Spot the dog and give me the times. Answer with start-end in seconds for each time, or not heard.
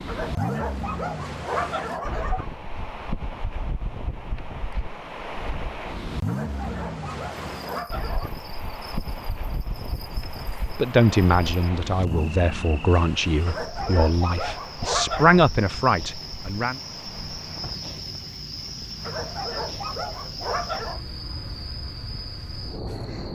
0.1-2.5, 6.2-8.3, 13.4-15.4, 19.1-21.0.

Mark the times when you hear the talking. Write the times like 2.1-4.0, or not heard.
10.8-16.8.